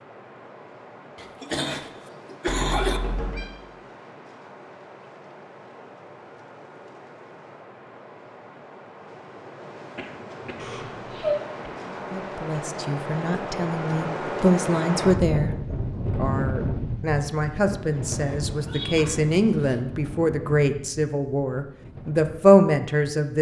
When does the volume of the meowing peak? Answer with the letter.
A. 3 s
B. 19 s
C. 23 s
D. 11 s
D.